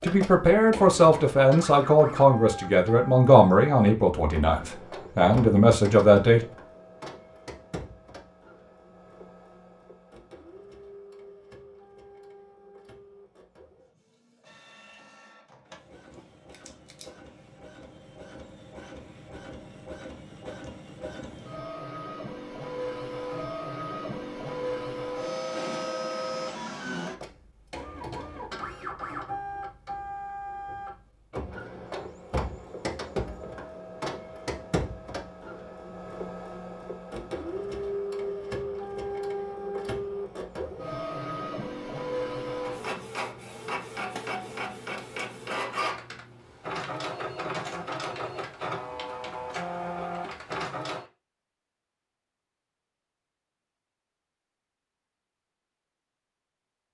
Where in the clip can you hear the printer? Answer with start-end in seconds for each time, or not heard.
0.0-51.0.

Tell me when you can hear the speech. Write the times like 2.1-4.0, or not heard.
0.0-6.4.